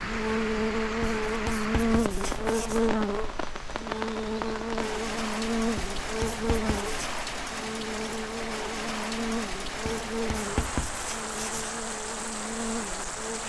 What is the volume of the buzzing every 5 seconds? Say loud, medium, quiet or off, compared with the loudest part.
loud, loud, medium.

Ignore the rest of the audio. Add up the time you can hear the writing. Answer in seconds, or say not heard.
5 s.